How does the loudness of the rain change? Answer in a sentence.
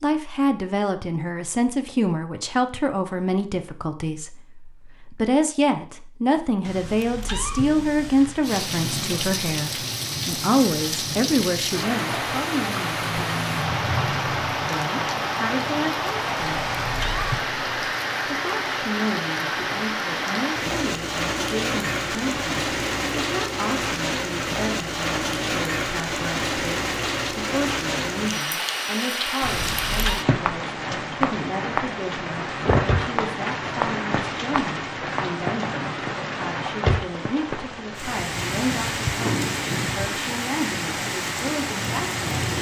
The loudness of the rain stays about the same.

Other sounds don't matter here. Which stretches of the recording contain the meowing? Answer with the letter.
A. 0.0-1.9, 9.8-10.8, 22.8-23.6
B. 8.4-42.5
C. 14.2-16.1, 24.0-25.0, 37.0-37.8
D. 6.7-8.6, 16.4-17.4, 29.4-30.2
D.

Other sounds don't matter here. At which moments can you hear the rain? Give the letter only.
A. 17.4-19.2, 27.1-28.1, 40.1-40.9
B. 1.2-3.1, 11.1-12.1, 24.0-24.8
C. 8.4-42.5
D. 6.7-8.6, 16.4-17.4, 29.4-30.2
C.